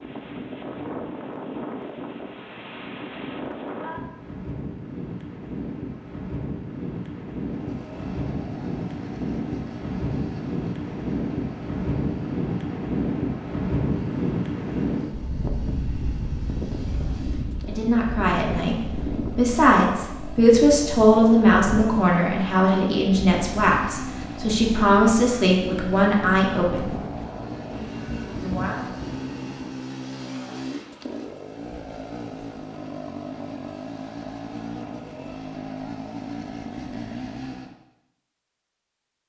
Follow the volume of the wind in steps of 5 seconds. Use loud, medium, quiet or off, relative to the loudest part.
medium, medium, loud, medium, medium, medium, off, off.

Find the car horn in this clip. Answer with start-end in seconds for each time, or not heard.
not heard.